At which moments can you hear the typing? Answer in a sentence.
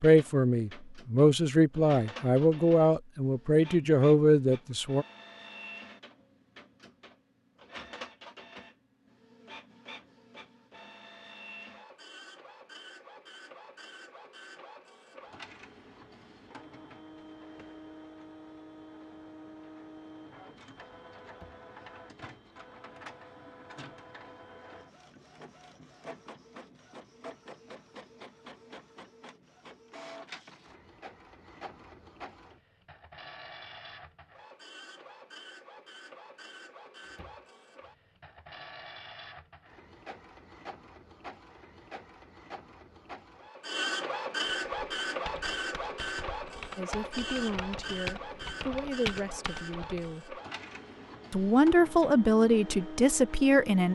You can hear the typing from 44.5 to 50.1 s.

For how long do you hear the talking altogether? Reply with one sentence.
You can hear the talking for 11 seconds altogether.